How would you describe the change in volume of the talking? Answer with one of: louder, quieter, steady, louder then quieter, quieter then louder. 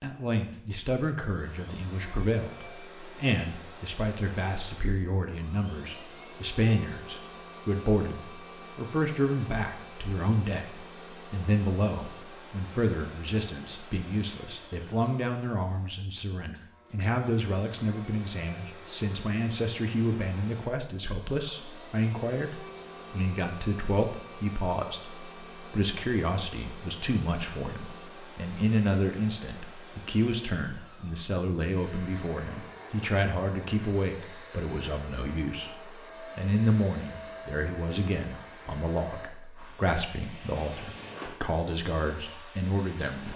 steady.